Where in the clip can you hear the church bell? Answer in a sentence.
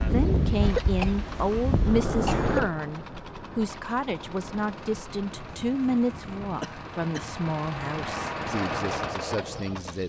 The church bell can't be heard in this clip.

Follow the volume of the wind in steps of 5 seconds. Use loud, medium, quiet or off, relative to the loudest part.
loud, quiet.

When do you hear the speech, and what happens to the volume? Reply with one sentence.
The speech can be heard from 0.0 to 10.0 s, getting quieter.